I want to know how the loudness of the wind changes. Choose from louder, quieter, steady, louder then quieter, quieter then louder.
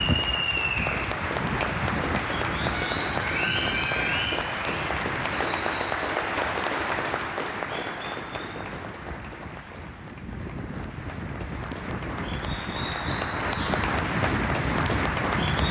quieter then louder.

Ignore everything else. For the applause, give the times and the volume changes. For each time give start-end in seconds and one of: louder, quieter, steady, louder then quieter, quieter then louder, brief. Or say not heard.
0.0-15.6 quieter then louder.